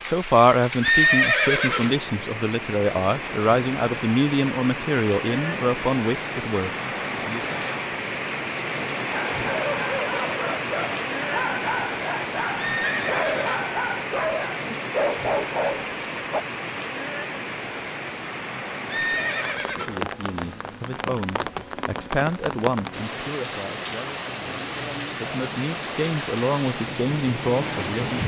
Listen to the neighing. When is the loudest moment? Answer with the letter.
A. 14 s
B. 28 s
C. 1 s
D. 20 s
C.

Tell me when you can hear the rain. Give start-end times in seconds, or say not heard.
0.0-28.2.